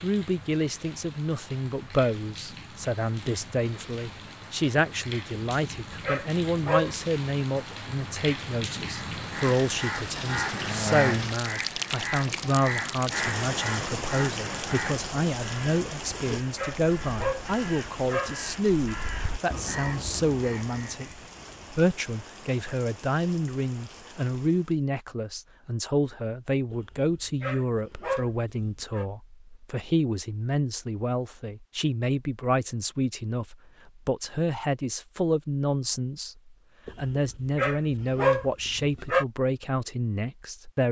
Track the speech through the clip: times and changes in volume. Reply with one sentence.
You can hear the speech from 0.0 to 21.1 s, at a steady volume; and from 21.7 to 40.8 s, at a steady volume.